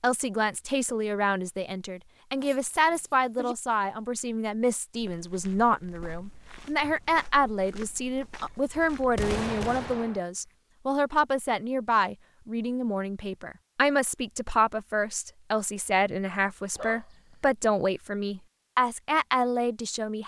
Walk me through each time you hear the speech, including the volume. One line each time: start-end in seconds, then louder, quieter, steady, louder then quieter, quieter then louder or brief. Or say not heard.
0.0-20.2 steady.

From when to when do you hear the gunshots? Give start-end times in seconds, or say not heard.
8.7-10.2.